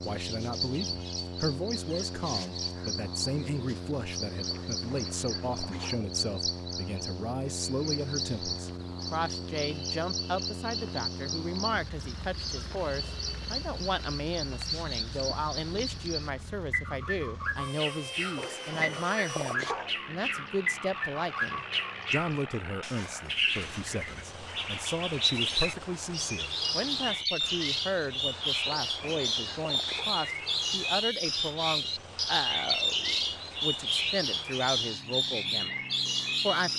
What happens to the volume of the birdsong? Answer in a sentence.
The volume of the birdsong goes up.